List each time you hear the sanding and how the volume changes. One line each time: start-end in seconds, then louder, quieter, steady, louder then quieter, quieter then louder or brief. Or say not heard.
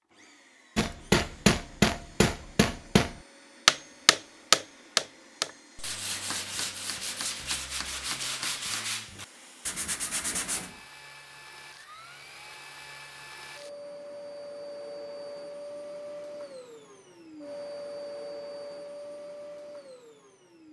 5.8-10.8 steady.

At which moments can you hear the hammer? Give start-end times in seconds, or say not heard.
0.8-8.7.